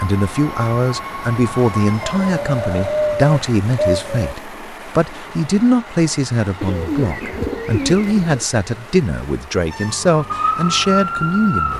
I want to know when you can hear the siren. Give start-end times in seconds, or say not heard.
0.0-2.4, 9.7-11.7.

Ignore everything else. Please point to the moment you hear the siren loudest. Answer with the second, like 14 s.
11 s.